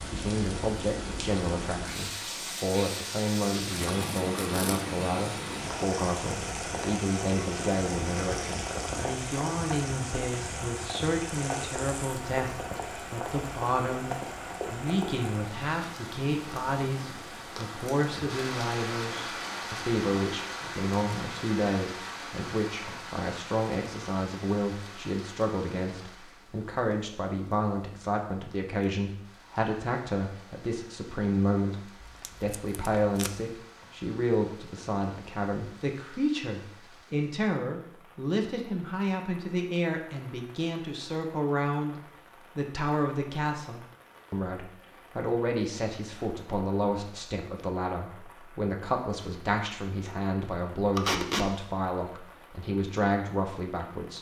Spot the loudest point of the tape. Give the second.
51 s.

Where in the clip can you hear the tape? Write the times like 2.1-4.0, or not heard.
3.8-4.8, 32.2-33.3, 51.0-51.5.